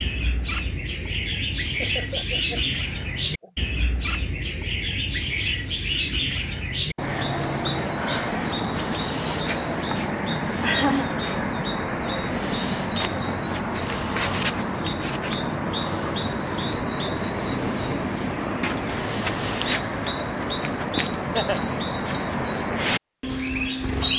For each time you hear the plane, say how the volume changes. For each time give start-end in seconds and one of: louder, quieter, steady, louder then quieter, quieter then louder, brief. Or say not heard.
not heard.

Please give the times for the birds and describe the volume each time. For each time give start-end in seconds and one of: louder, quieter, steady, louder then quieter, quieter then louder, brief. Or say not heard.
0.0-24.1 steady.